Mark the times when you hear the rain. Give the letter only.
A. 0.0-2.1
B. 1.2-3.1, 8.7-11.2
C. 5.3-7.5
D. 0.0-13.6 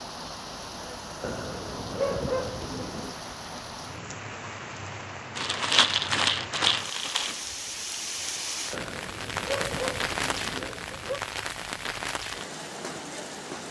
D.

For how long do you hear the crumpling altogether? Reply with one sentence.
You can hear the crumpling for 2 seconds altogether.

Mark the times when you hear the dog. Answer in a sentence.
You can hear the dog from 1.2 to 3.1 s and from 8.7 to 11.2 s.